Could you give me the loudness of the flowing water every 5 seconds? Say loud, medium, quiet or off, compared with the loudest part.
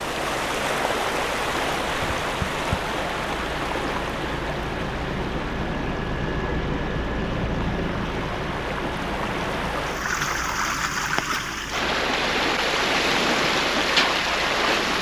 loud, medium, loud.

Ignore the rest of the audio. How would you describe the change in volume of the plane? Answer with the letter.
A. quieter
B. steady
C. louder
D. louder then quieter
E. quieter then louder
D.